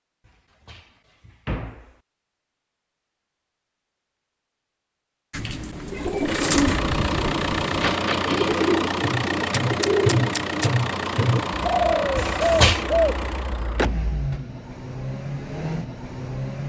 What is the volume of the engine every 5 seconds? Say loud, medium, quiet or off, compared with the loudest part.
off, loud, loud, medium.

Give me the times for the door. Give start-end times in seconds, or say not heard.
0.2-1.9, 7.8-8.7, 12.2-12.8.